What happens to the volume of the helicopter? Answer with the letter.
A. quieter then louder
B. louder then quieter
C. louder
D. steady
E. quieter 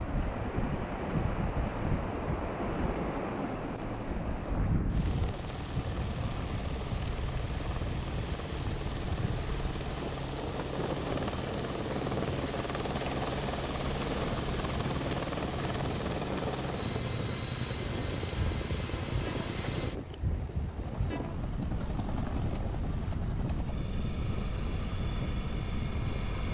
B.